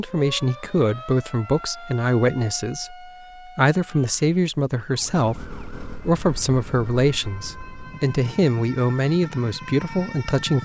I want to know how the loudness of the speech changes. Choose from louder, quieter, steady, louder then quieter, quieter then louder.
steady.